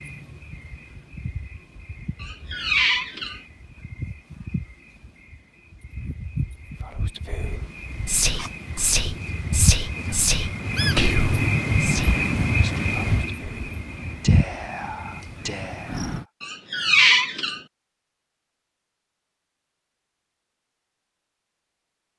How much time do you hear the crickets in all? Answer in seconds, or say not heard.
16 s.